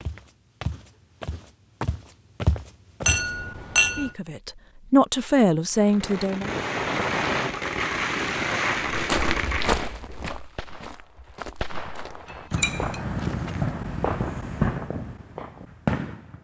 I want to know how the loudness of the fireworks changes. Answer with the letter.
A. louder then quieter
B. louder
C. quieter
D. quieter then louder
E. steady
D.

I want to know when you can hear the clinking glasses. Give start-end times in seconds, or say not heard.
3.0-4.1, 12.5-13.0.